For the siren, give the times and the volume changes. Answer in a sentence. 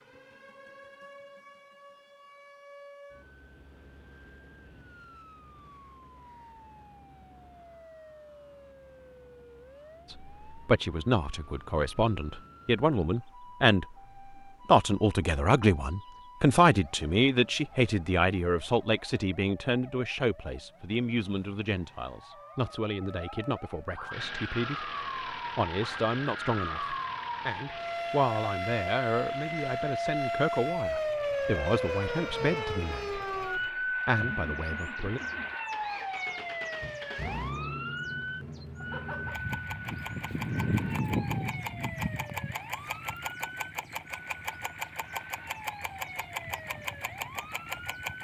The siren can be heard from 0.0 to 48.1 s, getting louder then quieter.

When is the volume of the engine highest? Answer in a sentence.
The loudest moment of the engine is at 41 seconds.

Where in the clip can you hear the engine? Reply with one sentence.
The engine can be heard from 24.1 to 48.1 s.